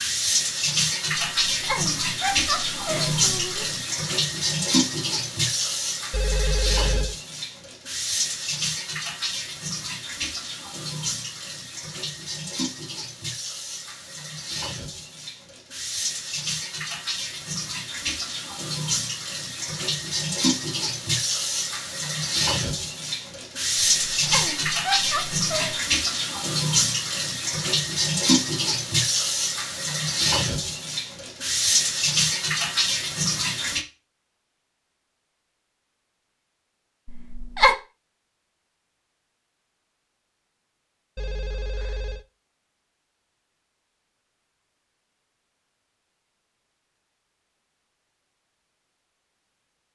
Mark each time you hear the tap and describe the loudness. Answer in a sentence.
You can hear the tap from 0.0 to 33.9 s, getting quieter then louder.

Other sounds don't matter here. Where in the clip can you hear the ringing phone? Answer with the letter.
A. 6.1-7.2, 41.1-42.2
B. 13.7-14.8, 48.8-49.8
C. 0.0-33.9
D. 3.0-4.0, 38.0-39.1
A.